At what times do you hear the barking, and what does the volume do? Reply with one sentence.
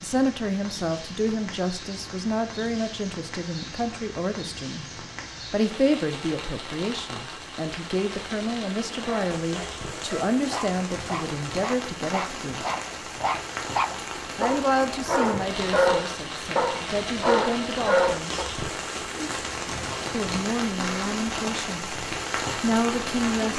The barking can be heard from 9.0 to 18.5 s, getting louder.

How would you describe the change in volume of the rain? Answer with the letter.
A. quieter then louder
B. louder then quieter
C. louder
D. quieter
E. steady
C.